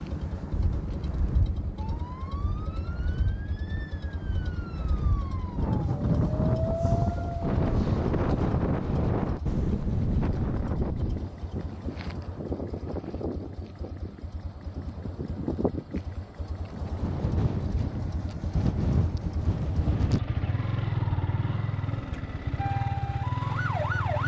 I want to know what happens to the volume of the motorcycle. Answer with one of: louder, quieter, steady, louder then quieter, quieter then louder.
louder.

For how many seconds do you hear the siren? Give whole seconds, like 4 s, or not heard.
8 s.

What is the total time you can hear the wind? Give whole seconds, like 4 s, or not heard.
20 s.